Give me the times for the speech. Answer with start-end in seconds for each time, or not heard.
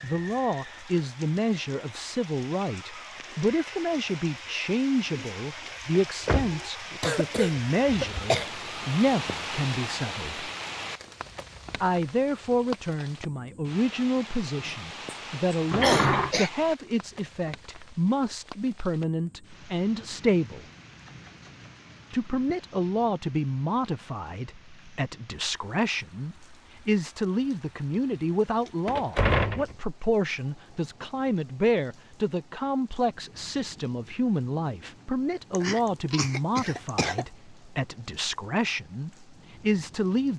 0.0-10.5, 11.8-20.6, 22.1-40.3.